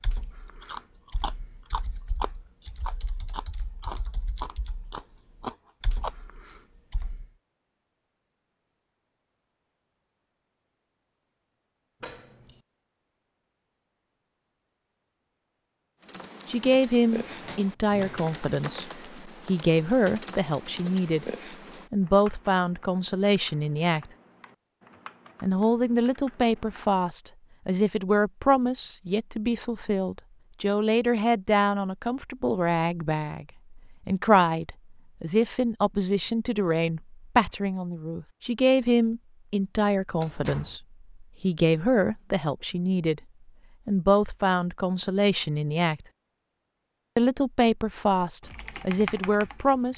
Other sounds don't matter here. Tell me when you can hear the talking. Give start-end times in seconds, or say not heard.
16.4-21.2, 21.9-24.1, 25.4-43.2, 43.9-46.0, 47.1-49.9.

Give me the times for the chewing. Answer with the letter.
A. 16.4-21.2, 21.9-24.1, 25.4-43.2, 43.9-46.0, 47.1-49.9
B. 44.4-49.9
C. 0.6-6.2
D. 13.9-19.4
C.